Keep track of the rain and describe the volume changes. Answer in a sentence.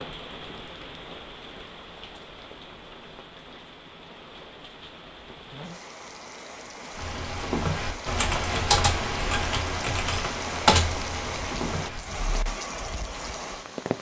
The volume of the rain goes up.